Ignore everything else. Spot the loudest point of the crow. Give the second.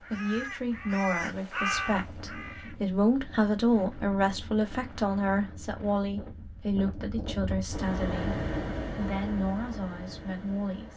2 s.